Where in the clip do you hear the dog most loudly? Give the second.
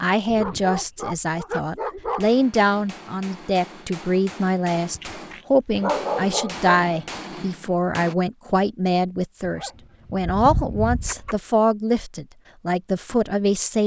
6 s.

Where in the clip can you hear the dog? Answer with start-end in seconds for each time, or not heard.
0.2-2.4, 5.0-6.8, 9.4-11.3.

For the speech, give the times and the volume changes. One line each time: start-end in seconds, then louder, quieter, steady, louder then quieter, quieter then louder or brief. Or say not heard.
0.0-13.8 steady.